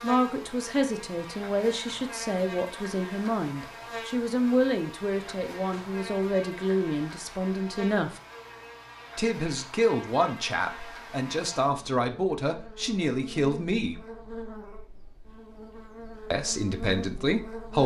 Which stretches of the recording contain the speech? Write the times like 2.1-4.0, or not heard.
0.0-8.2, 9.2-14.0, 16.3-17.8.